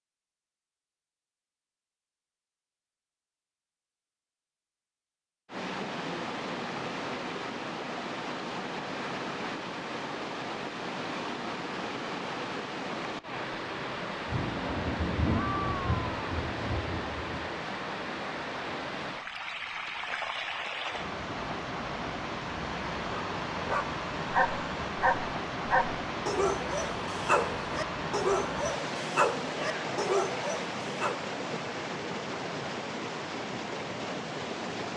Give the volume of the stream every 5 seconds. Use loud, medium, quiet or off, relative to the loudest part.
off, loud, loud, loud, loud, loud, loud.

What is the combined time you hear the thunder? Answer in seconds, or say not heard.
3 s.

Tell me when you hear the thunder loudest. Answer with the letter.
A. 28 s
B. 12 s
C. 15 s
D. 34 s
C.